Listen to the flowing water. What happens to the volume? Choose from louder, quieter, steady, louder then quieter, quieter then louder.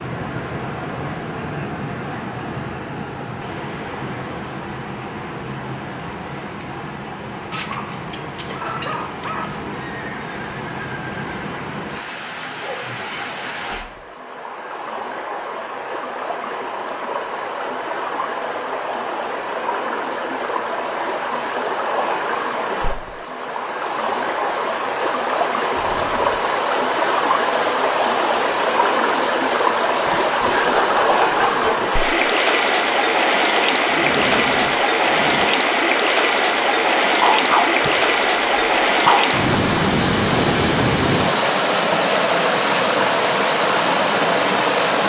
louder.